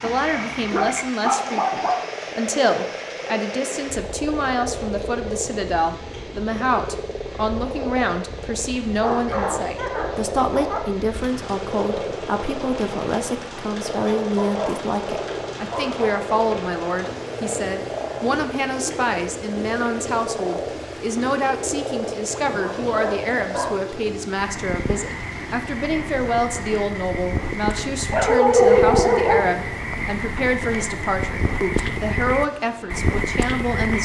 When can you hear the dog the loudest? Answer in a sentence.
The volume of the dog peaks at 29 seconds.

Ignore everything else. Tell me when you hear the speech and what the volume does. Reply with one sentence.
You can hear the speech from 0.0 to 33.9 s, at a steady volume.